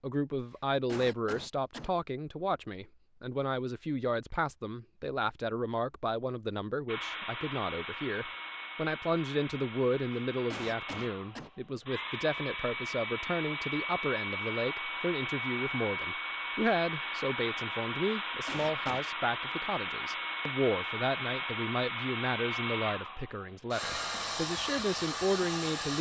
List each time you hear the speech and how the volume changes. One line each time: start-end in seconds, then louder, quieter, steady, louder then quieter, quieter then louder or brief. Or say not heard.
0.0-25.9 steady.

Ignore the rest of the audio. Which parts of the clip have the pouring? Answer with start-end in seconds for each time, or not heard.
not heard.